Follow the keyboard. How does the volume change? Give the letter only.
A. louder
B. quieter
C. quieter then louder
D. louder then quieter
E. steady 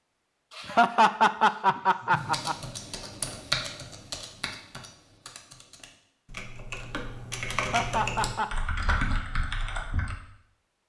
C.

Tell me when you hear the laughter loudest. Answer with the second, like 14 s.
1 s.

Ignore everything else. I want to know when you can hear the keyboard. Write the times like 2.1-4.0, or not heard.
2.1-10.2.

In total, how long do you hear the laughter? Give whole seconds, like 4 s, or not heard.
3 s.